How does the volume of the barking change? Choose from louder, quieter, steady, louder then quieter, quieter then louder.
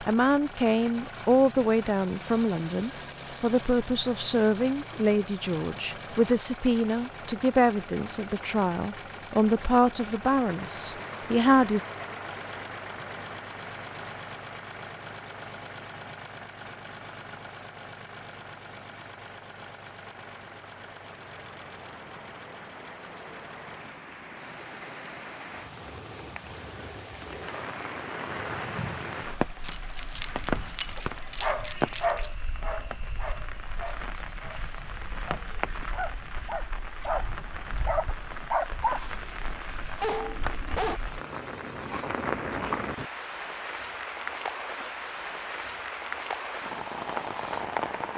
quieter then louder.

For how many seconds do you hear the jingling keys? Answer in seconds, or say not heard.
3 s.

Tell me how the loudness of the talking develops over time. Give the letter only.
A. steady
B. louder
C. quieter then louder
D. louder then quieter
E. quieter
A.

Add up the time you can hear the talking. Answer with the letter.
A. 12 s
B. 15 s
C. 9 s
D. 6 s
A.